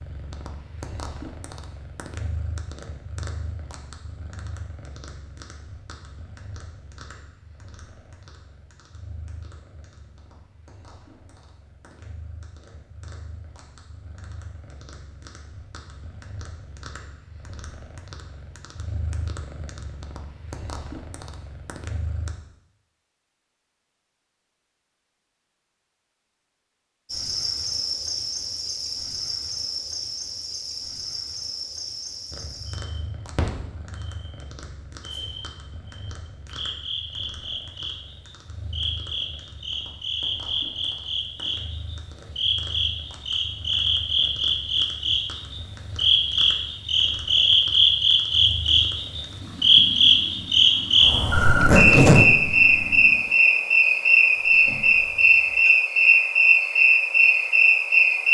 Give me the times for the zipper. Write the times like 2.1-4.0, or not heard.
51.3-52.8.